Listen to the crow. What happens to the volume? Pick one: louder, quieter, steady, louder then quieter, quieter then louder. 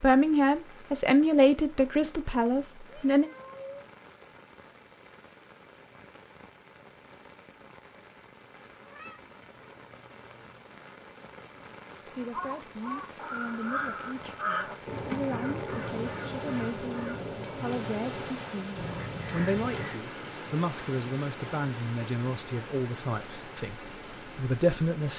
quieter.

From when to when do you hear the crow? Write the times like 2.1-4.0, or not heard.
12.2-19.9.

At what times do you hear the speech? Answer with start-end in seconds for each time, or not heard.
0.0-3.3, 12.1-25.1.